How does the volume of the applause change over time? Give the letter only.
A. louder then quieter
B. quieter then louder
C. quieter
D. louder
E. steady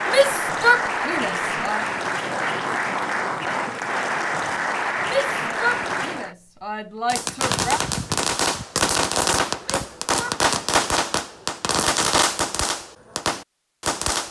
E.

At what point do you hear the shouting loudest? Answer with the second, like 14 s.
1 s.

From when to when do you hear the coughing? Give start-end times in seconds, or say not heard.
not heard.